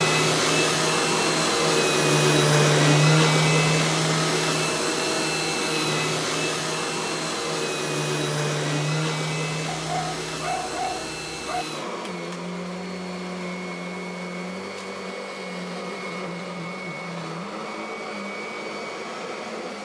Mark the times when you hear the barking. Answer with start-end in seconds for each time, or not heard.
9.7-11.7.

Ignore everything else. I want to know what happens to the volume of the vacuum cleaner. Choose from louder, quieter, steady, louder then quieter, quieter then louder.
quieter.